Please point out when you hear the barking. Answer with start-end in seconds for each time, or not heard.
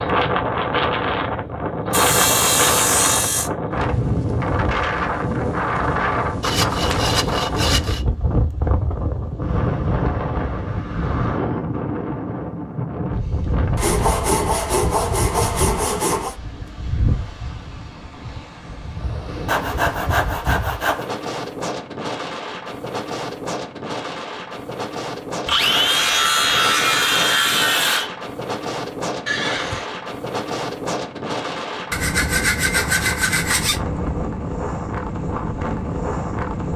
not heard.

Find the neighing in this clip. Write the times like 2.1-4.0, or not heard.
29.2-29.9.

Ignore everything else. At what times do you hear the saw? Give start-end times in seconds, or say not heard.
1.9-3.5, 6.4-8.1, 13.8-16.4, 19.4-21.1, 25.4-28.1, 31.9-33.8.